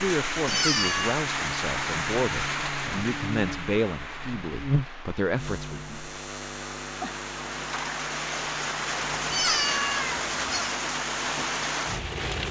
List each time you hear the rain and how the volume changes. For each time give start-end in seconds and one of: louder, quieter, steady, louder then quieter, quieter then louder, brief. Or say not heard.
0.0-12.4 quieter then louder.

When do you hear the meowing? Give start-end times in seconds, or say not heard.
0.5-1.2, 9.2-10.8.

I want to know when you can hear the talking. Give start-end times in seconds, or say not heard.
0.0-6.0.